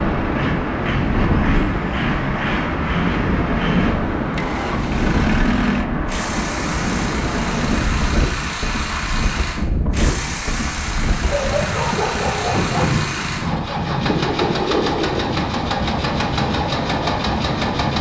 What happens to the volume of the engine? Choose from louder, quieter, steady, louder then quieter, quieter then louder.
steady.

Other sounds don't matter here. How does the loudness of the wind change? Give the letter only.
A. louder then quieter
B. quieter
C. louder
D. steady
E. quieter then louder
D.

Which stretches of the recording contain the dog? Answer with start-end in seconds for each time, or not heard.
11.2-12.8.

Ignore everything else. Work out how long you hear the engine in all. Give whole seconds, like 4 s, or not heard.
18 s.